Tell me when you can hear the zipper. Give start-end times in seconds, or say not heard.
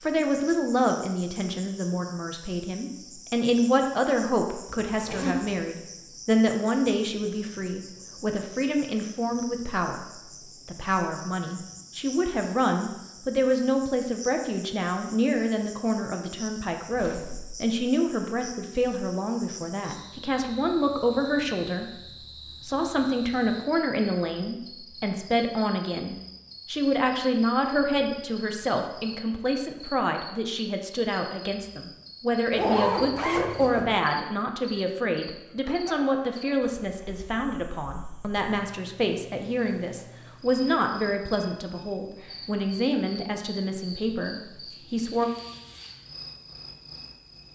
4.8-5.7, 16.9-17.6, 32.5-34.0.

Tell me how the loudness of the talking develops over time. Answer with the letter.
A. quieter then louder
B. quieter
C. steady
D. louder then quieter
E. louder
C.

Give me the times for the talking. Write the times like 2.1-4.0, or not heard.
0.0-10.1, 10.7-21.9, 22.6-45.3.